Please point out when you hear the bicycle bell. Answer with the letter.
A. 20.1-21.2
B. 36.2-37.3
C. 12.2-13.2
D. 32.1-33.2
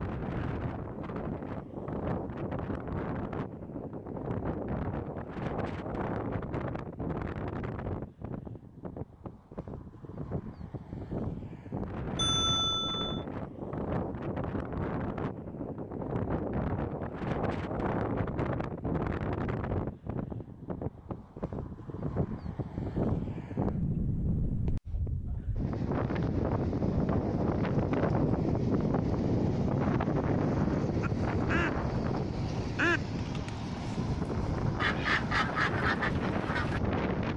C.